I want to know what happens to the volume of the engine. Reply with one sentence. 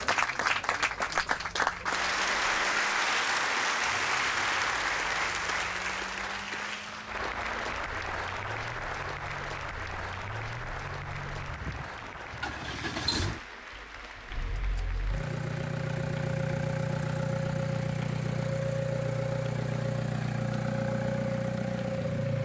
The volume of the engine goes up.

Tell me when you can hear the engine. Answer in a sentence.
You can hear the engine from 0.0 to 22.4 s.